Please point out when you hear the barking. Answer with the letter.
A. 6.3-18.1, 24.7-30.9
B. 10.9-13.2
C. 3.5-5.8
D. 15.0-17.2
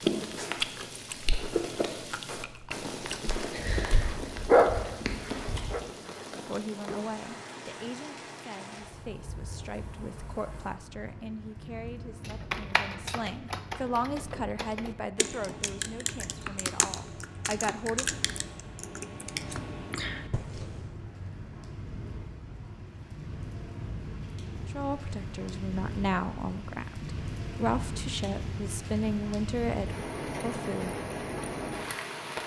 C.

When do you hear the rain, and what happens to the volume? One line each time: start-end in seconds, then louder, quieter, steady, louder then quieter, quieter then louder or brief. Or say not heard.
0.0-32.4 quieter then louder.